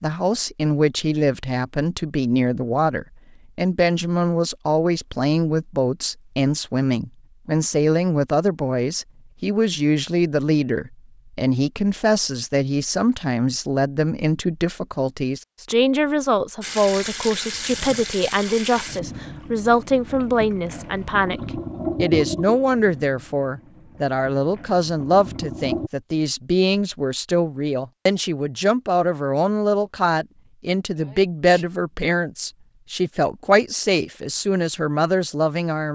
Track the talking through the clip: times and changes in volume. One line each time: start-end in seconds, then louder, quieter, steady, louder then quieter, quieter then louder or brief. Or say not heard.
0.0-35.8 steady.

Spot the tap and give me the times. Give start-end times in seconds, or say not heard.
16.6-25.9.